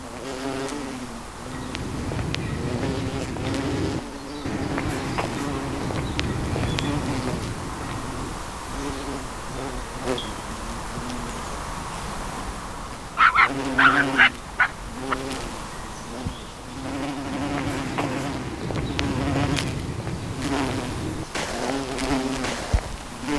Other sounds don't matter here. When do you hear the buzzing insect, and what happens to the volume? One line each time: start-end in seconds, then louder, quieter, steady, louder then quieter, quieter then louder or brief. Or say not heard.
0.0-23.3 steady.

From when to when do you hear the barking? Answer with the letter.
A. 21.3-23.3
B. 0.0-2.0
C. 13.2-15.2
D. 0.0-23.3
C.